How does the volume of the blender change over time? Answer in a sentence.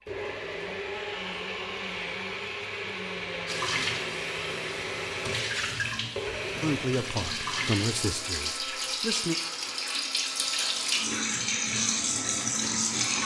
The volume of the blender goes down.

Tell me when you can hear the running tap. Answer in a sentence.
You can hear the running tap from 3.5 to 13.2 s.